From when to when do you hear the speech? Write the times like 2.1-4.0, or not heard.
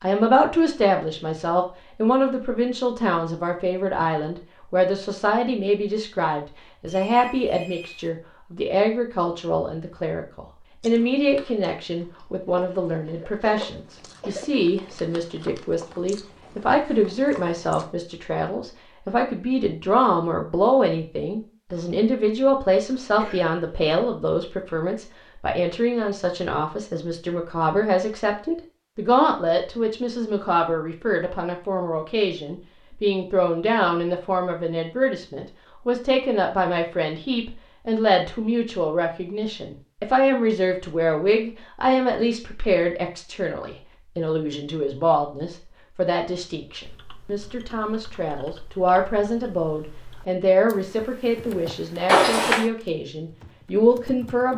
0.0-54.5.